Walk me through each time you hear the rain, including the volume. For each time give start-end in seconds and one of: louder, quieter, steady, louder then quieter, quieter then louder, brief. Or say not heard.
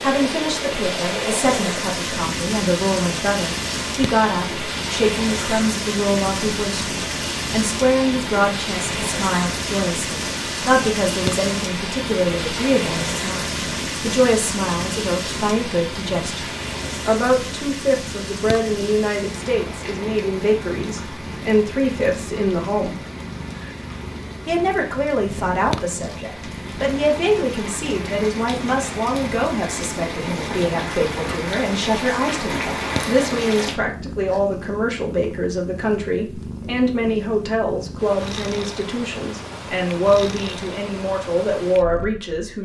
0.0-33.8 quieter then louder.